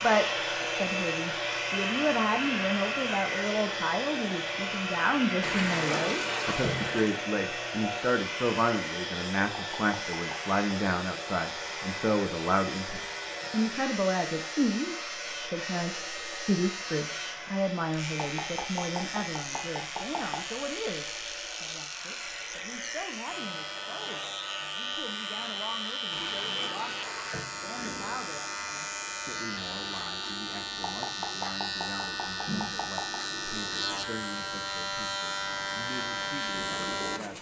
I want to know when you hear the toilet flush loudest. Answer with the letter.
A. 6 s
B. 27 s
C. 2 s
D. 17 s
A.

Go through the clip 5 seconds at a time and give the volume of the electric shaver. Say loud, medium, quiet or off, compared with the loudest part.
medium, medium, medium, medium, medium, loud, loud, loud.